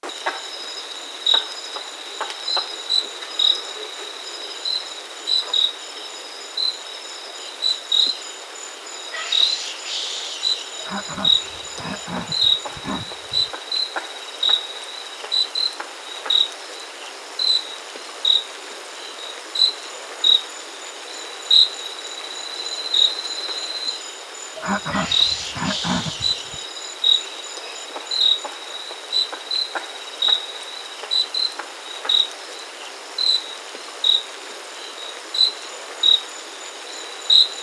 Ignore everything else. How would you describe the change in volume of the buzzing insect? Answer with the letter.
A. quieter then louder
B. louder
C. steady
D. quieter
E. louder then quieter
C.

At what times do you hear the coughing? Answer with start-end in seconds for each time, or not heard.
10.8-13.5, 24.6-26.6.